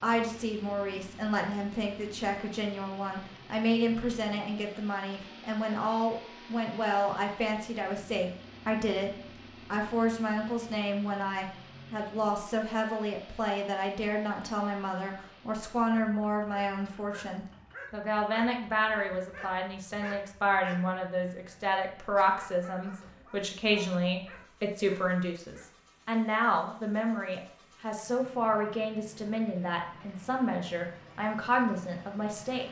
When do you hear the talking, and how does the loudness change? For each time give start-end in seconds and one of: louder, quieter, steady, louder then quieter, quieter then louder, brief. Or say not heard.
0.0-32.6 steady.